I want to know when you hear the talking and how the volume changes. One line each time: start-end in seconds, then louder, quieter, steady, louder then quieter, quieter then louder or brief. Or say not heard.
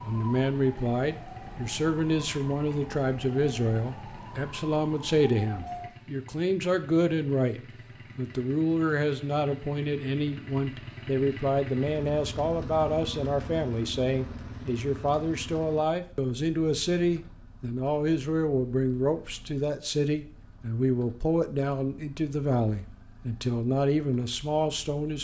0.0-25.1 steady.